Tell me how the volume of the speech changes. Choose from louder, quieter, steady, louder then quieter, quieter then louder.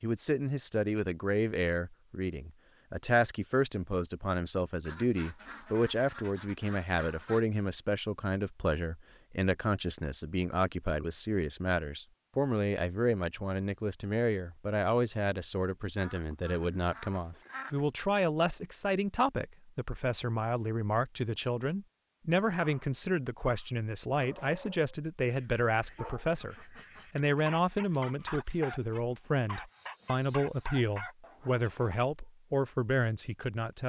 steady.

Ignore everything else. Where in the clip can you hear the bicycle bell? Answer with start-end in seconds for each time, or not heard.
not heard.